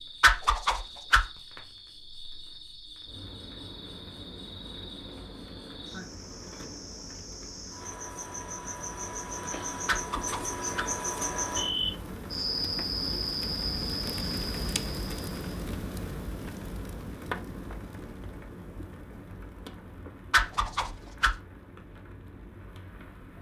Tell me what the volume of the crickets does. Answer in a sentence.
The volume of the crickets goes up.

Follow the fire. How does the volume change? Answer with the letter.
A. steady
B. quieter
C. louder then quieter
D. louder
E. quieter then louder
C.